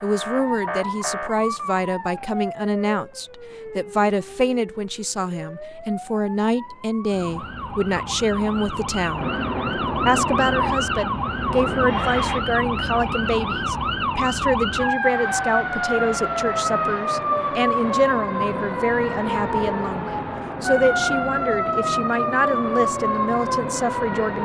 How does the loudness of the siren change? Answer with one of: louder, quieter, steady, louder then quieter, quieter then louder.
louder.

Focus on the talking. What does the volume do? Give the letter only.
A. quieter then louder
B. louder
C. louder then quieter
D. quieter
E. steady
E.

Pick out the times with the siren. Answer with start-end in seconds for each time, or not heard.
0.0-24.4.